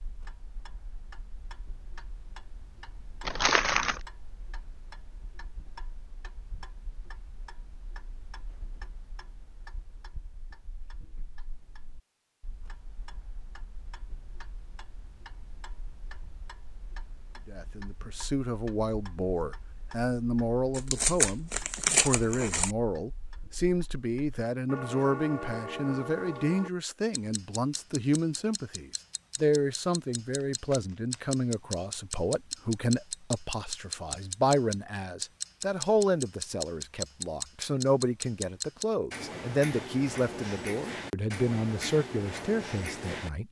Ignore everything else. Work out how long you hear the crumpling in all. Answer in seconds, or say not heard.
4 s.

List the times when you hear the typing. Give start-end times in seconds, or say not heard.
not heard.